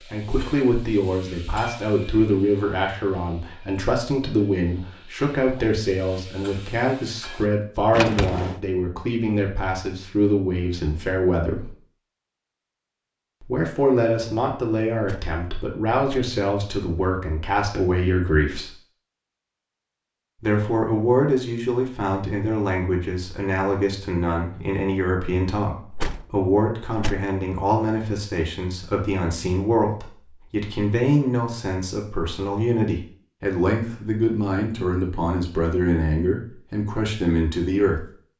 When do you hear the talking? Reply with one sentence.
You can hear the talking from 0.1 to 11.7 s, from 13.4 to 18.7 s and from 20.4 to 38.0 s.